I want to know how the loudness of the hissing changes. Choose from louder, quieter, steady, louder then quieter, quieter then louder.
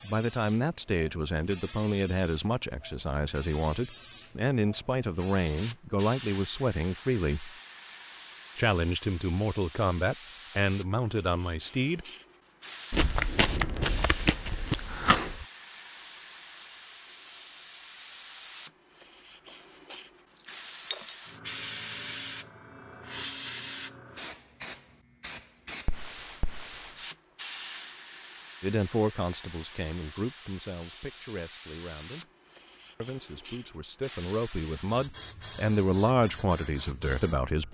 steady.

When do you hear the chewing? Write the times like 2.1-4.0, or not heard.
12.9-15.4, 19.9-21.3.